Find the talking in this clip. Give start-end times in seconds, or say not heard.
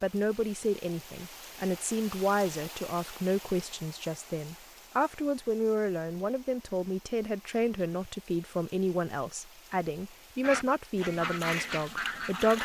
0.0-12.6.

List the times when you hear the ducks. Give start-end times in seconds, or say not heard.
10.4-12.6.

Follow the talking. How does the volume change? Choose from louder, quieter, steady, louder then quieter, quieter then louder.
steady.